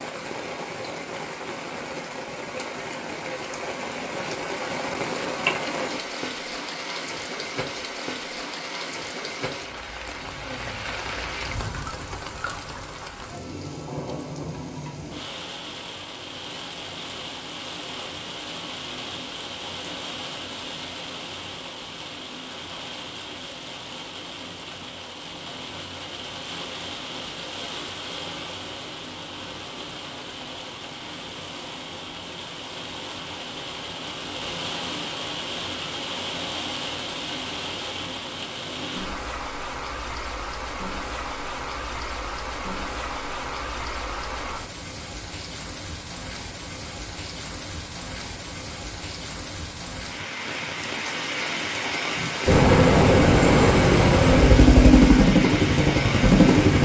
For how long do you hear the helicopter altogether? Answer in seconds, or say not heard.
4 s.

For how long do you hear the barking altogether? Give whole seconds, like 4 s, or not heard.
not heard.